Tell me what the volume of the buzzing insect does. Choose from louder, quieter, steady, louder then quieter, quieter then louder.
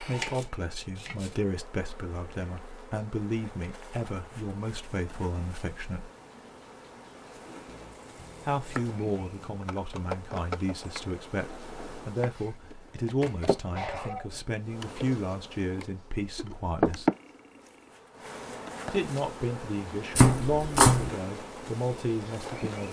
louder then quieter.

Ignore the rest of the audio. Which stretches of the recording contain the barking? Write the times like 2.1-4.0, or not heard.
13.7-14.4.